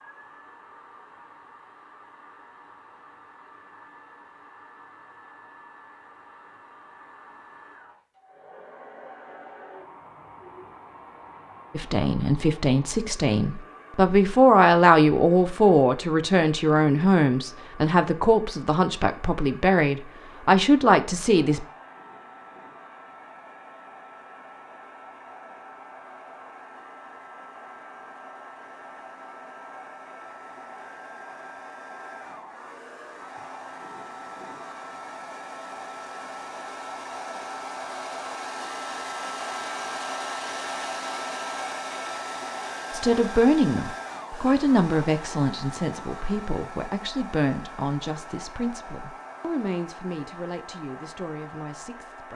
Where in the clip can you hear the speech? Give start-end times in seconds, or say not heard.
11.8-21.6, 42.9-52.3.